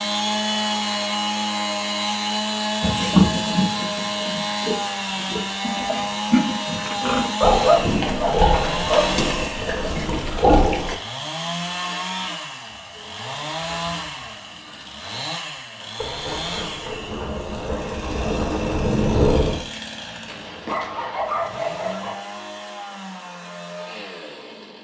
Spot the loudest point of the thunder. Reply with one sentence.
The volume of the thunder peaks at 19 seconds.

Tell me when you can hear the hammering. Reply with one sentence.
The hammering can't be heard in this clip.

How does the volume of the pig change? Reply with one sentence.
The loudness of the pig goes down, then up.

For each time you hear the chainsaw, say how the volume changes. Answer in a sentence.
You can hear the chainsaw from 0.0 to 24.7 s, getting quieter.